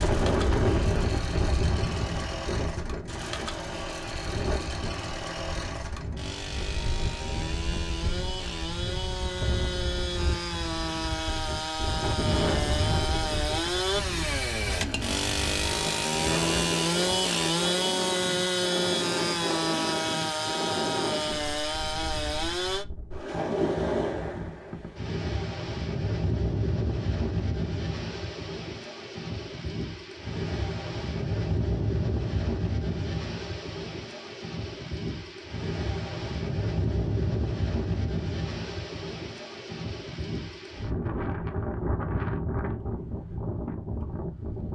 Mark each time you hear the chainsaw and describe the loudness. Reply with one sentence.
The chainsaw can be heard from 0.0 to 22.9 s, getting louder.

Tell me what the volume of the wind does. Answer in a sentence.
The loudness of the wind stays about the same.